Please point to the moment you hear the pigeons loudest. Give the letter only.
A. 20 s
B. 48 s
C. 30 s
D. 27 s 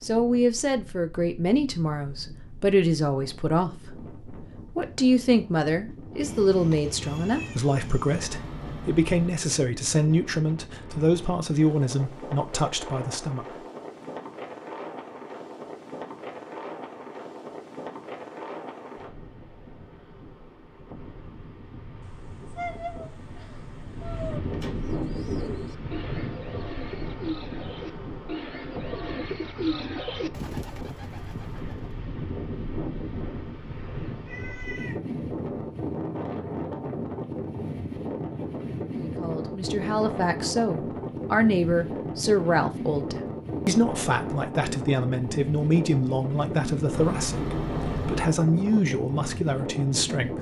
C.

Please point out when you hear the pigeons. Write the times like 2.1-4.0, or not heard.
24.8-32.0.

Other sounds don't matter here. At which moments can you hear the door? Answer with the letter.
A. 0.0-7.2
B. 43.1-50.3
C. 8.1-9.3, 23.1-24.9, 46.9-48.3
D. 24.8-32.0
C.